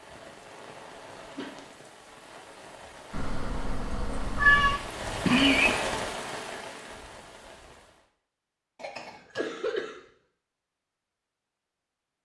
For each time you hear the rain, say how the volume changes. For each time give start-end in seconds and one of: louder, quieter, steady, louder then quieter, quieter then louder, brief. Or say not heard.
0.0-8.1 louder then quieter.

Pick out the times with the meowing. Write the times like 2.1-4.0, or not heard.
3.1-4.8.